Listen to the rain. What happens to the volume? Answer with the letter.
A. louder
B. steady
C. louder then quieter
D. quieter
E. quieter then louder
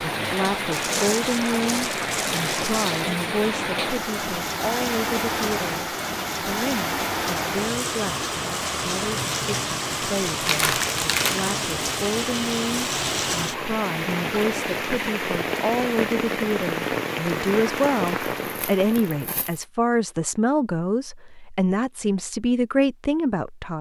B.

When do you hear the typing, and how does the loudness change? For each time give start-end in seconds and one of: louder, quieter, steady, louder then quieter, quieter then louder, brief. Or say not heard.
not heard.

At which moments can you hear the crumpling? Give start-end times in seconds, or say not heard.
0.7-3.0, 10.4-11.5, 18.4-19.6.